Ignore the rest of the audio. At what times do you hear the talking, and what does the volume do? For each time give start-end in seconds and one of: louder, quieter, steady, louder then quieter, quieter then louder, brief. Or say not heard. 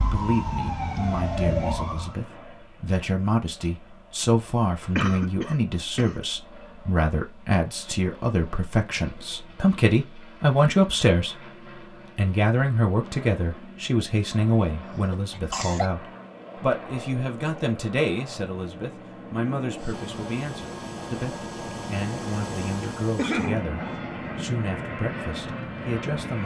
0.0-11.3 louder
12.2-26.4 quieter.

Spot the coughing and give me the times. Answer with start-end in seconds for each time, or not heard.
5.0-6.2, 14.7-15.9, 23.1-23.6.